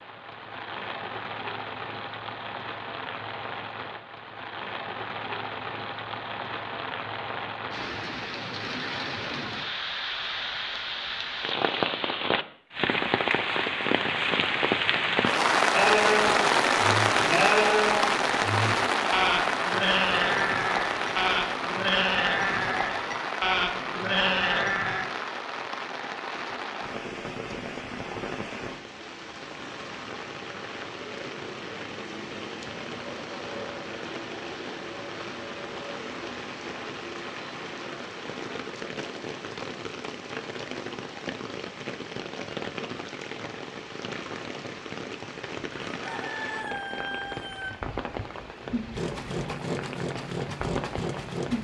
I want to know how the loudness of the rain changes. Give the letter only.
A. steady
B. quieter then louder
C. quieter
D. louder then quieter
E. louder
D.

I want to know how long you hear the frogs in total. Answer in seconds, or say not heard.
not heard.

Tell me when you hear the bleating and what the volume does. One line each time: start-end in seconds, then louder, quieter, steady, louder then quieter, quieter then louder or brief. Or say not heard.
15.7-25.1 steady.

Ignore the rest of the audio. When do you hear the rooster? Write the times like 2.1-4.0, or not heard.
46.0-47.7.